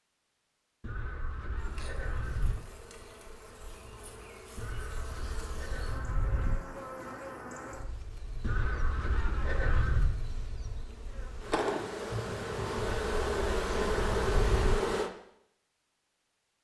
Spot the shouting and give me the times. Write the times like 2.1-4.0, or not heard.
not heard.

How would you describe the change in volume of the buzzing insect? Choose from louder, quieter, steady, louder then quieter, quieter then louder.
louder.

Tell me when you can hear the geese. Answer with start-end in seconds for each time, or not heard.
0.8-2.5, 4.5-6.6, 8.4-10.2, 12.8-14.8.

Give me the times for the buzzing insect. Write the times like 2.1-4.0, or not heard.
1.6-15.1.